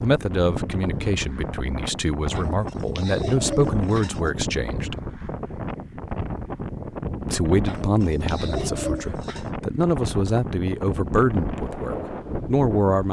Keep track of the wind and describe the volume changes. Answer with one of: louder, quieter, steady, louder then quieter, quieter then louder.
steady.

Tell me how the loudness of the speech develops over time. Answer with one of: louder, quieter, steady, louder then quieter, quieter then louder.
steady.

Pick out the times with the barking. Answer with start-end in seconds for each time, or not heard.
not heard.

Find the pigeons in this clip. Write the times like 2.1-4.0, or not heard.
2.4-4.3, 7.7-9.5.